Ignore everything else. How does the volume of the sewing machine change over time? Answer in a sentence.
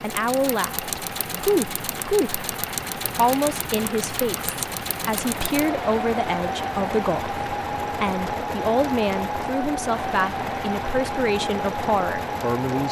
The volume of the sewing machine stays about the same.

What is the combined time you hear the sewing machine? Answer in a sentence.
The sewing machine can be heard for 13 seconds in total.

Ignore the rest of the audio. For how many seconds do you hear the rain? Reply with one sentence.
You can hear the rain for 13 seconds altogether.